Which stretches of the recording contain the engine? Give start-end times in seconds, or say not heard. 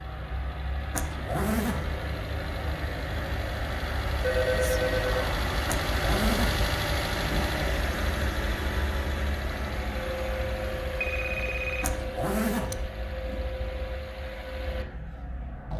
0.0-15.7.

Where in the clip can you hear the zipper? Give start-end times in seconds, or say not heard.
0.9-2.0, 5.7-7.5, 11.8-13.4.